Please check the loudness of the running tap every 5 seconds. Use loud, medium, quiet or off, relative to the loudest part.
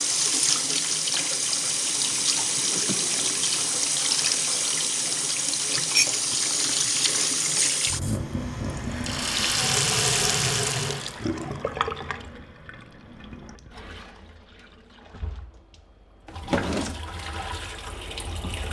loud, loud, medium, quiet.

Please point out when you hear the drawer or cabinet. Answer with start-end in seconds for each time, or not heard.
2.5-3.4, 16.2-17.0.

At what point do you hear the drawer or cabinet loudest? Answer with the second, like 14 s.
17 s.